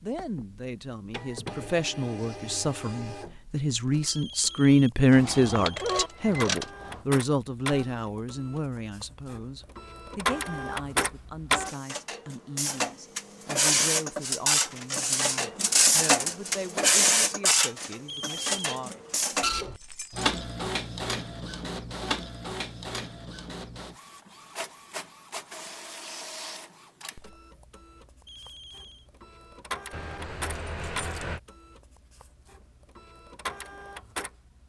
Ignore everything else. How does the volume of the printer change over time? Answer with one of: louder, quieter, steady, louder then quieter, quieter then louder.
louder then quieter.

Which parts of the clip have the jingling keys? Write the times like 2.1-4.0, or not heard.
5.1-7.0, 19.6-20.4, 29.9-31.4.